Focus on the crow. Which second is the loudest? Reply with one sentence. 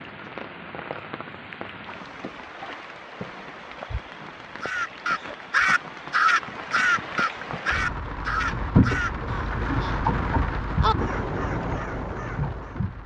The volume of the crow peaks at 6 seconds.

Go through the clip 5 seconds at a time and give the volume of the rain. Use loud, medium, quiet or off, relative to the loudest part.
medium, loud, loud.